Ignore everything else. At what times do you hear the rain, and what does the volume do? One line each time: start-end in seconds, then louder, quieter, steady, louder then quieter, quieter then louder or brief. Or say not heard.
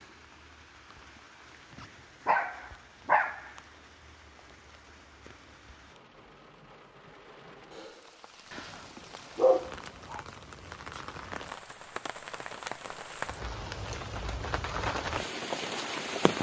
0.0-16.3 louder.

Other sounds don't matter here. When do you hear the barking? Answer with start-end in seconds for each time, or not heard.
1.8-3.5, 8.5-10.2.